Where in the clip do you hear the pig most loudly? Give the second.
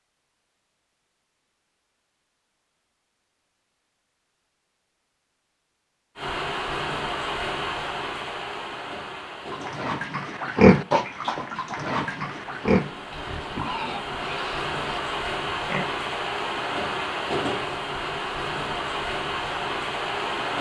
11 s.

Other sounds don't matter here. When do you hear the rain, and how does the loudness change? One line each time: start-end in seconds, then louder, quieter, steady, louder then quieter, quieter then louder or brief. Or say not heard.
6.2-20.5 quieter then louder.